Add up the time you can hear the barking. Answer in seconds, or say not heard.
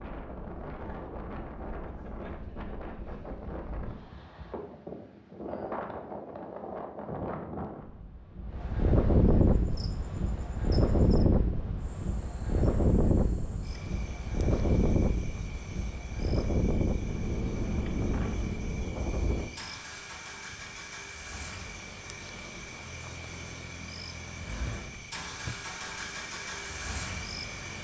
not heard.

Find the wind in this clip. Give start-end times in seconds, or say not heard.
0.0-19.5.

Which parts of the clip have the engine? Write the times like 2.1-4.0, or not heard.
19.4-27.7.